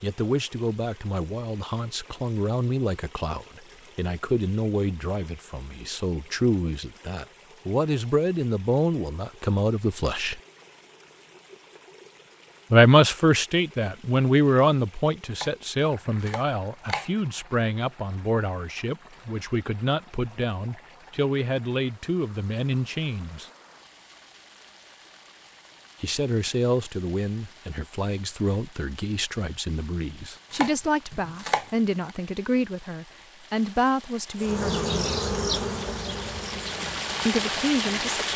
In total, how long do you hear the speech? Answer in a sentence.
The speech can be heard for 31 seconds in total.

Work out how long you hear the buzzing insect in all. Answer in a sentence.
The buzzing insect can be heard for 4 seconds in total.